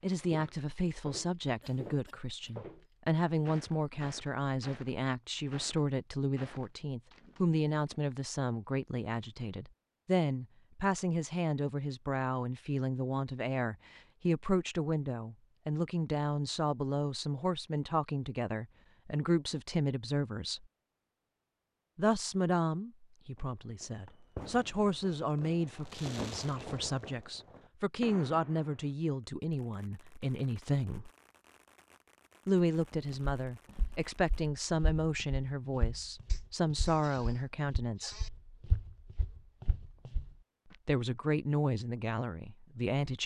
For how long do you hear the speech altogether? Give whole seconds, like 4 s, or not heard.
38 s.